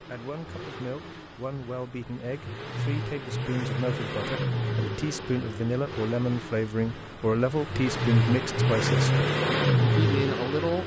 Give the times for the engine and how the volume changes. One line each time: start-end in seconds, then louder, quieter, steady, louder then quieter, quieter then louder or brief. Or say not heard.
0.0-10.8 louder.